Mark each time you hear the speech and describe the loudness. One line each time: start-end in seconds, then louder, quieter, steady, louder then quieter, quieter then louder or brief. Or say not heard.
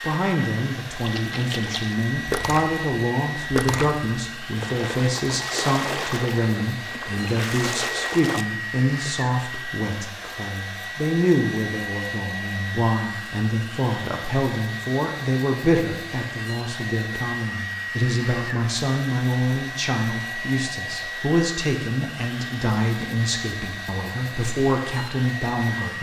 0.0-25.9 steady.